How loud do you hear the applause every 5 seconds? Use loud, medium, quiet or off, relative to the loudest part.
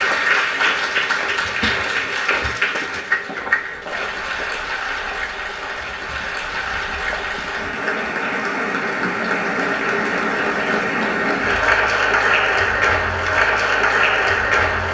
loud, medium, loud.